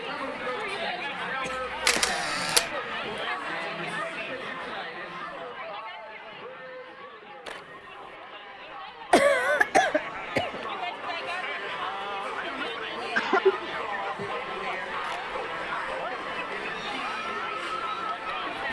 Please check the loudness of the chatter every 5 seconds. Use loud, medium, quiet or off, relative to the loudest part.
loud, medium, loud, loud.